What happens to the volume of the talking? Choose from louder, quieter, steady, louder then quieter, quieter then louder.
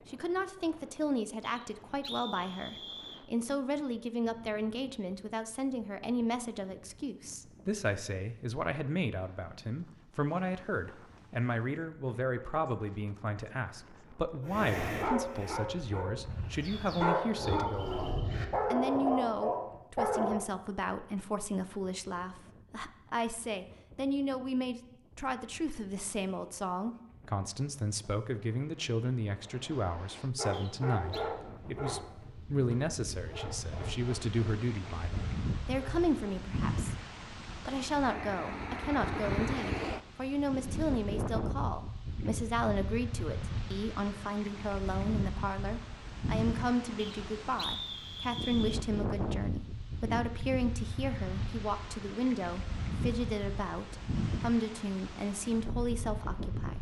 steady.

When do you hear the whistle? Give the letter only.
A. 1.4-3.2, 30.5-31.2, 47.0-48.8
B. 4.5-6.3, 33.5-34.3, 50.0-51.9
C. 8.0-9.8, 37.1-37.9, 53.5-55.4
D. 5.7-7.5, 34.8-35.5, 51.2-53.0
A.